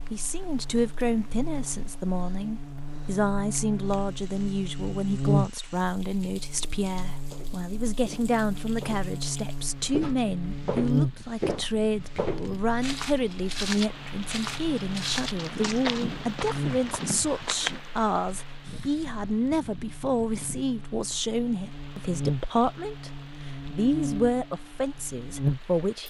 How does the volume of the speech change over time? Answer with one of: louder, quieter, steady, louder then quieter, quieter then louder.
steady.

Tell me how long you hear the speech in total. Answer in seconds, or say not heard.
26 s.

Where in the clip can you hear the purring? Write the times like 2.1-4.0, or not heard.
not heard.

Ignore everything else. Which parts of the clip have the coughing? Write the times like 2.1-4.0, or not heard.
not heard.